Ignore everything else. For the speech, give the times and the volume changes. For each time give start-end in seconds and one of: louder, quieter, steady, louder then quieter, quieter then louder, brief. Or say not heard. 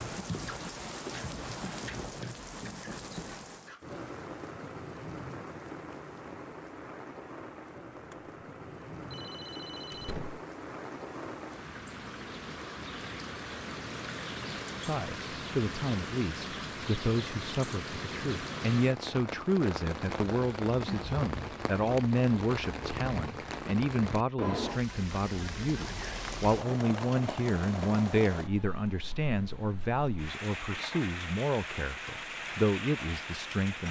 14.8-33.8 steady.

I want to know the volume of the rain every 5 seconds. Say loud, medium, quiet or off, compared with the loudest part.
loud, medium, loud, loud, loud, loud, loud.